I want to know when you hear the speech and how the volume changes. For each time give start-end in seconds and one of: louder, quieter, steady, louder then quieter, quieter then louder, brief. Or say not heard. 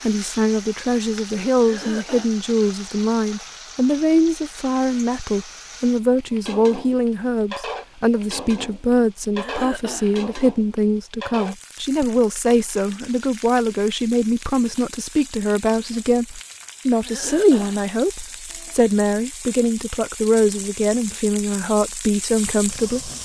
0.0-23.1 steady.